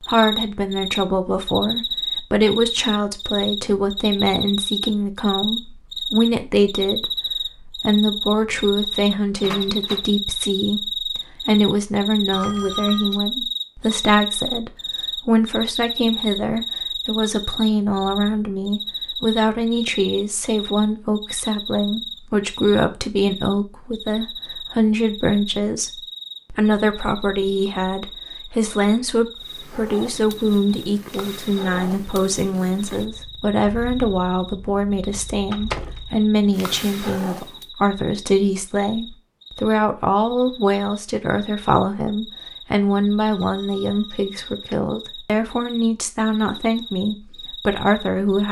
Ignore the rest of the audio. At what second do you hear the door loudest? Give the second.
36 s.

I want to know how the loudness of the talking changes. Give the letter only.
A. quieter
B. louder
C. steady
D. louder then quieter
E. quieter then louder
C.